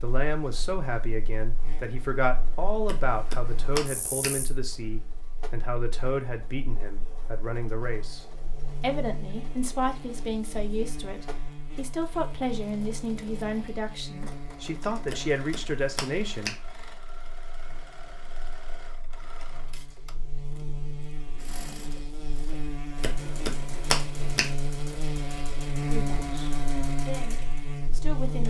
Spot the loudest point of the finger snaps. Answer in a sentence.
The loudest moment of the finger snaps is at 24 seconds.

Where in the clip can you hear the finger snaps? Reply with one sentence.
You can hear the finger snaps from 2.9 to 4.3 s, from 15.1 to 16.6 s and from 23.0 to 24.5 s.